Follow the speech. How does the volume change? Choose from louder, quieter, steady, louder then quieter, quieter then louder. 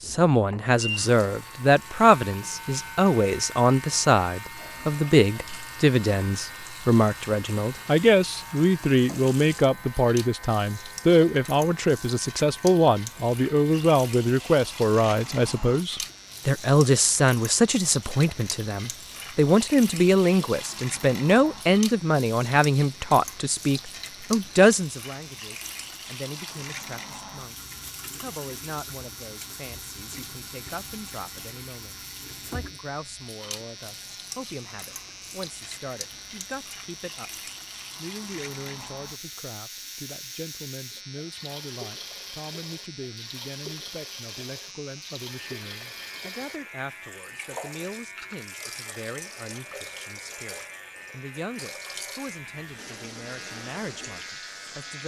quieter.